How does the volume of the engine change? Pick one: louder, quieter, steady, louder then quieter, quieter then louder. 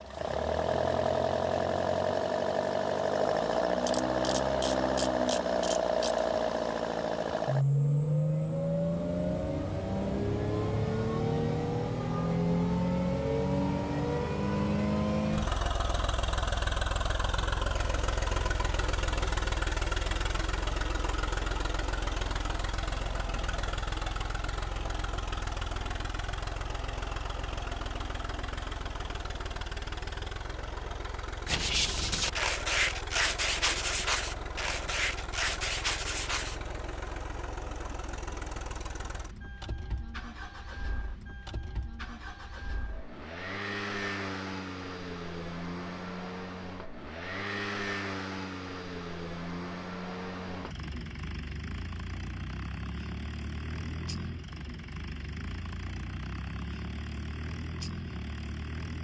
quieter.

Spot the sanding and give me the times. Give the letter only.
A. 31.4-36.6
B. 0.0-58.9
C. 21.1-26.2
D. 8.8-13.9
A.